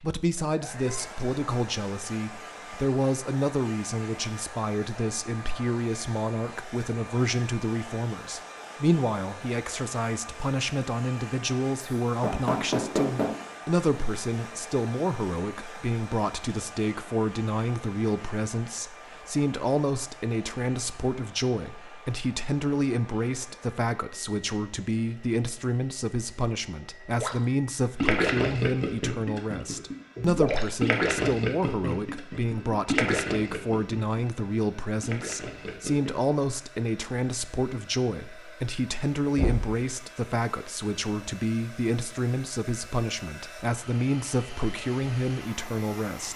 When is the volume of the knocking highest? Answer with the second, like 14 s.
13 s.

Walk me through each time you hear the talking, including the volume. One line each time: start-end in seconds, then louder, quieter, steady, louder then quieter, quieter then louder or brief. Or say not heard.
0.0-46.3 steady.